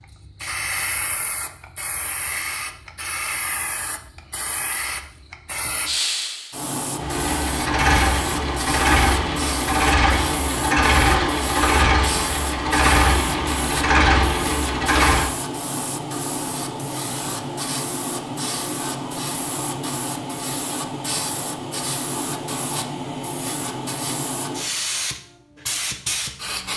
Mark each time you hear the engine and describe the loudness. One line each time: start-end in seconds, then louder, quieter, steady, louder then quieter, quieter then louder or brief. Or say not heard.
7.0-15.3 steady.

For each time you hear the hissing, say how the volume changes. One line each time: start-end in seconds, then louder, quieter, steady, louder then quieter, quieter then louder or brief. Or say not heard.
0.0-26.7 steady.